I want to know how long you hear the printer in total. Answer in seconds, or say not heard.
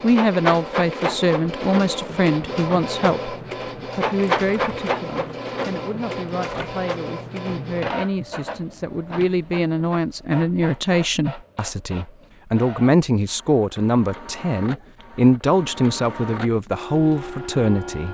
18 s.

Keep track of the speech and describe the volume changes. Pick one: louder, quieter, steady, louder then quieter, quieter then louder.
quieter then louder.